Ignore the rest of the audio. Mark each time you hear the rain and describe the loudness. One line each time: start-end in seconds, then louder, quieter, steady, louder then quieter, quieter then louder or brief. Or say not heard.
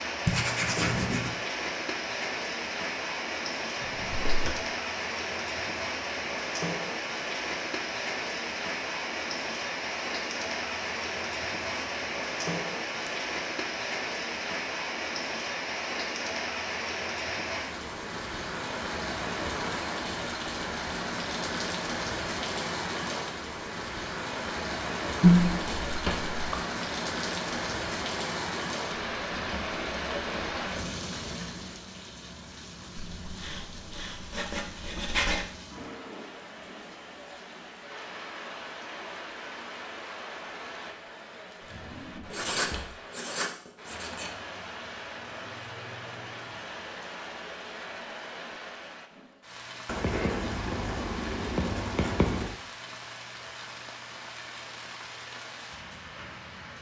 0.0-56.7 quieter.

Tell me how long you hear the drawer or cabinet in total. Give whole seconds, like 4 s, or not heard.
3 s.